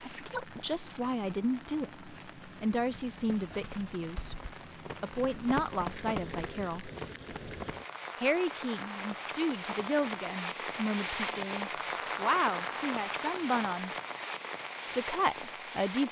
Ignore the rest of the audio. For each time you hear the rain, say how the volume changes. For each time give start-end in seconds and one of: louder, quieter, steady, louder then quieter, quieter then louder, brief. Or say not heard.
0.0-16.0 louder.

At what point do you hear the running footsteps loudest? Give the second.
6 s.